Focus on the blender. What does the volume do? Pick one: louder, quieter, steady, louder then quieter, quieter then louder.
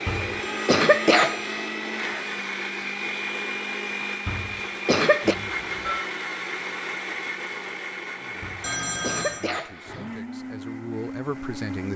quieter.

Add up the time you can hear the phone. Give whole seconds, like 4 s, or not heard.
4 s.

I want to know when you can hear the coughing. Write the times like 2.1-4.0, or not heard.
0.1-1.7, 4.2-5.3, 8.4-10.1.